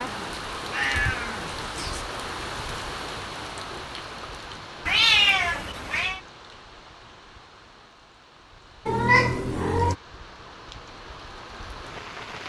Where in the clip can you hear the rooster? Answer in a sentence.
The rooster can't be heard in this clip.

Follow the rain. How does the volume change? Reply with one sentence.
The volume of the rain goes down, then up.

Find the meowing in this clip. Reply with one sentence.
The meowing can be heard from 0.1 to 2.0 s, from 4.8 to 6.2 s and from 8.8 to 9.9 s.